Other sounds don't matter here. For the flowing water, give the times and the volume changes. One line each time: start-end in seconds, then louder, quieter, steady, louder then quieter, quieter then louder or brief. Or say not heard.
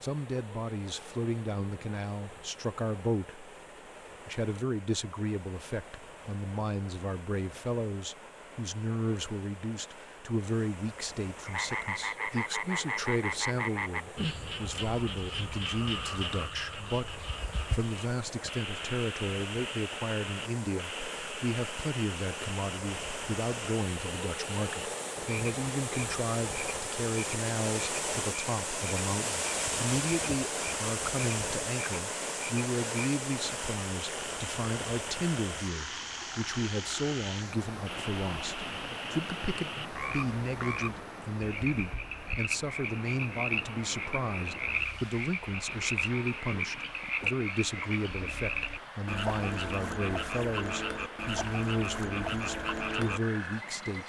0.0-54.0 louder then quieter.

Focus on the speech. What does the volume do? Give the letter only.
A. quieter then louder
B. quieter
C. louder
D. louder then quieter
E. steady
E.